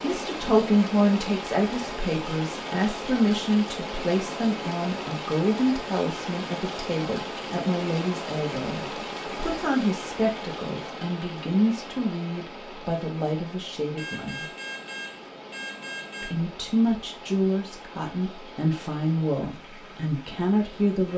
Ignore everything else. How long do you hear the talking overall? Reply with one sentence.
The talking can be heard for 19 seconds in total.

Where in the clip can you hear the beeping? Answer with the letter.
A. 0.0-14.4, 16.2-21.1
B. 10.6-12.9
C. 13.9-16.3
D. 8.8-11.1
C.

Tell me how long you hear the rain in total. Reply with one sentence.
You can hear the rain for 21 seconds altogether.